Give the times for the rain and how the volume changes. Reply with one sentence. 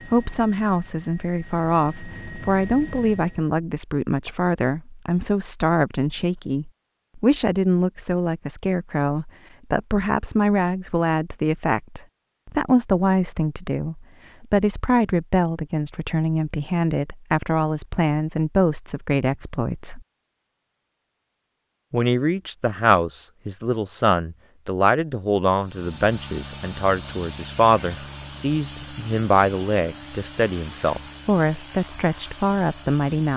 The rain can't be heard in this clip.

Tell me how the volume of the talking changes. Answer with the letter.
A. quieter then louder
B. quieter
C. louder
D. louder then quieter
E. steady
E.